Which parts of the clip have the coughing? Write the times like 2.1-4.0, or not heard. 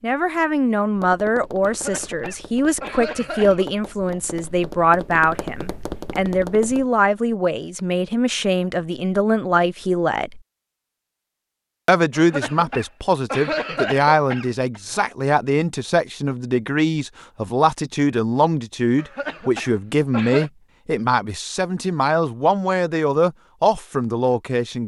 1.6-3.6, 12.2-14.8, 18.9-20.5.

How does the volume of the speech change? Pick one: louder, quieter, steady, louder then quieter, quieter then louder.
steady.